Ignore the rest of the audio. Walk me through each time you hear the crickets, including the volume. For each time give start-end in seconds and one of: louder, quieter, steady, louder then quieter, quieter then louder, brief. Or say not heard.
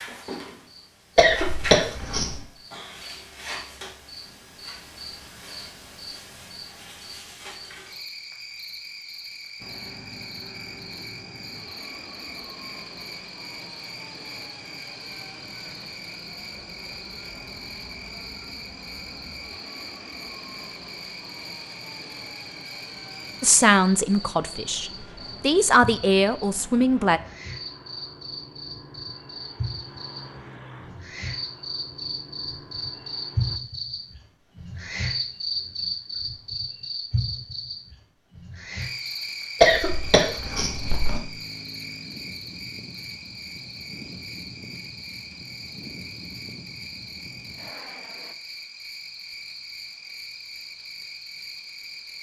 0.0-52.1 louder then quieter.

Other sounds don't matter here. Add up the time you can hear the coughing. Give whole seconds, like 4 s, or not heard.
3 s.